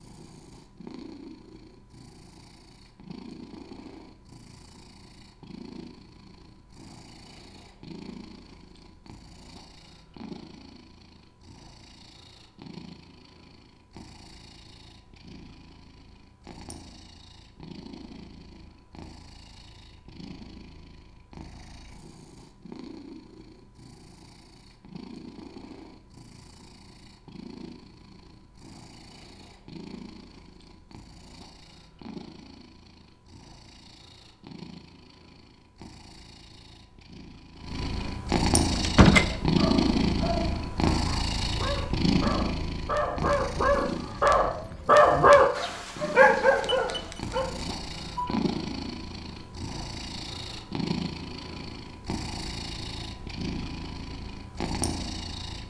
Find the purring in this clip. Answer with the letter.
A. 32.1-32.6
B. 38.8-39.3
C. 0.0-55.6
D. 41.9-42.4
C.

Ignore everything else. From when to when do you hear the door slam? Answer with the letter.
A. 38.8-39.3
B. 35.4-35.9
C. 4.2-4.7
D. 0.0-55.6
A.